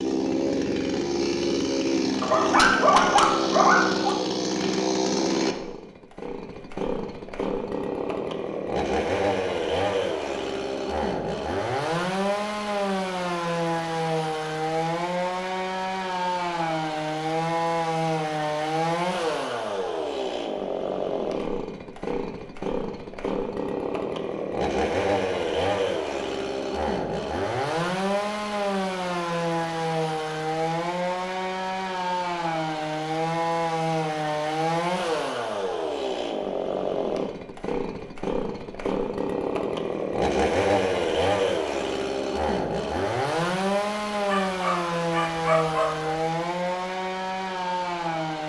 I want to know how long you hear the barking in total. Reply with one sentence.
You can hear the barking for 4 seconds altogether.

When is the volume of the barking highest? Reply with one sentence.
The volume of the barking peaks at 3 seconds.